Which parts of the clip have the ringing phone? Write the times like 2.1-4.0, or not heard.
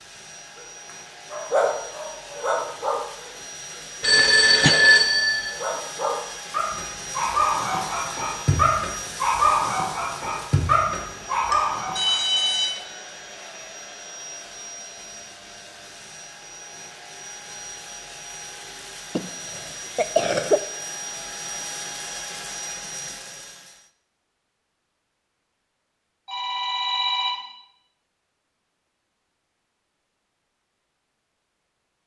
4.0-5.5, 11.5-12.7, 26.2-27.4.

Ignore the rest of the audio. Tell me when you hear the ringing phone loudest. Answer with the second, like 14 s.
5 s.